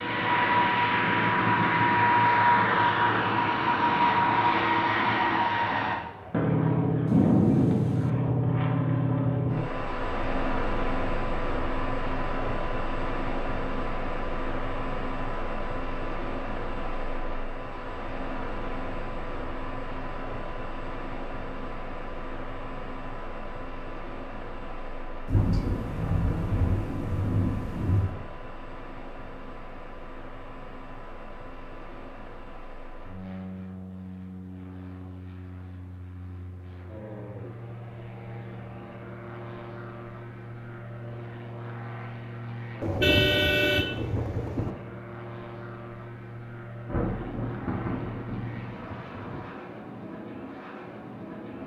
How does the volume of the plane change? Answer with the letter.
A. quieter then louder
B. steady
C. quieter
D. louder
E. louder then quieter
C.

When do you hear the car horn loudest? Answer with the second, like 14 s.
43 s.